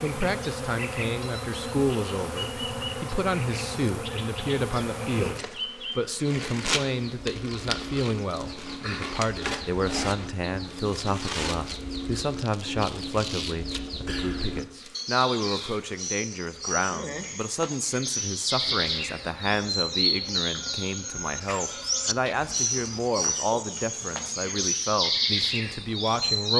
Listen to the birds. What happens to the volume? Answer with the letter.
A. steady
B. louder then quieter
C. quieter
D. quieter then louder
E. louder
E.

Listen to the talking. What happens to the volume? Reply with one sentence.
The loudness of the talking stays about the same.